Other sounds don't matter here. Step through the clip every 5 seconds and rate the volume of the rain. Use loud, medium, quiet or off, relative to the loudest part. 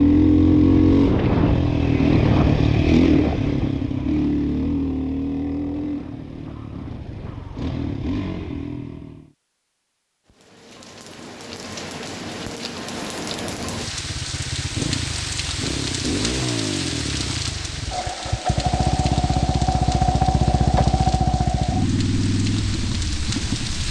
off, off, loud, loud, loud.